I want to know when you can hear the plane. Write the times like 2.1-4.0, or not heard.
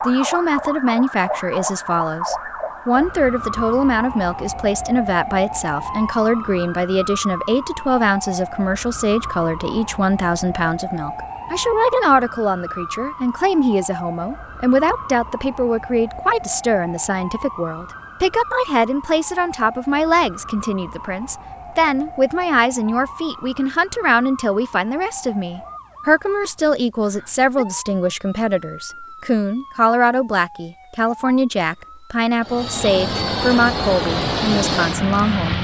32.4-35.5.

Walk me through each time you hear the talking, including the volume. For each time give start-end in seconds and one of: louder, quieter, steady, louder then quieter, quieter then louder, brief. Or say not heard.
0.0-35.5 steady.